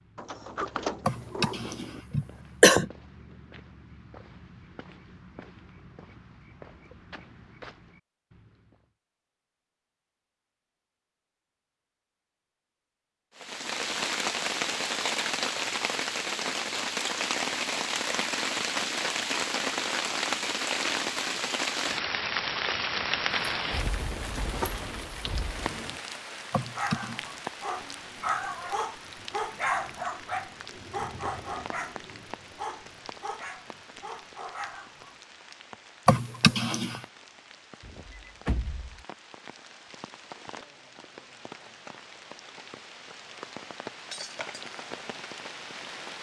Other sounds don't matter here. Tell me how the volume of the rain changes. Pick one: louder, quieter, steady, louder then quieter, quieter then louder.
quieter then louder.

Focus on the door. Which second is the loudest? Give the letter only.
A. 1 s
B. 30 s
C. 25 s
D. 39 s
A.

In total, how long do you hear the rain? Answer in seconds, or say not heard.
33 s.